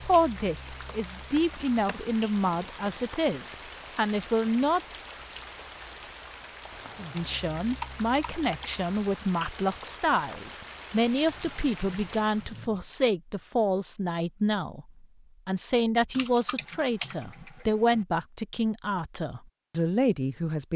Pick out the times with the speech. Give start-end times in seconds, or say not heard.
0.0-4.8, 7.1-20.7.